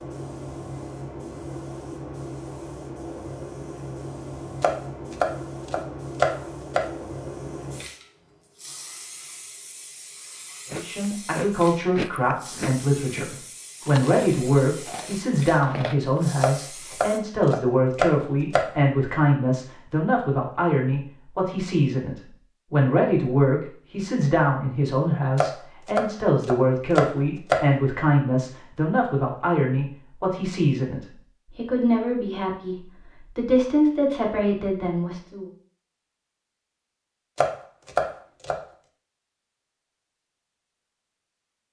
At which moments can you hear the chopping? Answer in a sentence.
The chopping can be heard from 4.6 to 6.8 s, from 16.4 to 18.6 s, from 25.4 to 27.6 s and from 37.4 to 38.5 s.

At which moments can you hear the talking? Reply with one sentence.
You can hear the talking from 10.7 to 35.5 s.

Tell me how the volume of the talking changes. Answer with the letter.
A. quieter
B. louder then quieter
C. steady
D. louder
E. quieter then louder
C.